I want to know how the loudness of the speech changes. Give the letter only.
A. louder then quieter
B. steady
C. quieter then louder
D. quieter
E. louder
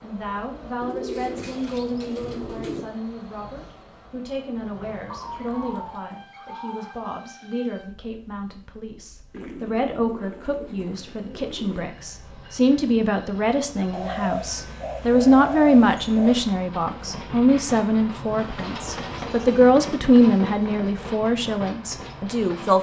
E.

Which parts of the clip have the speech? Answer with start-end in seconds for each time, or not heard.
0.0-22.7.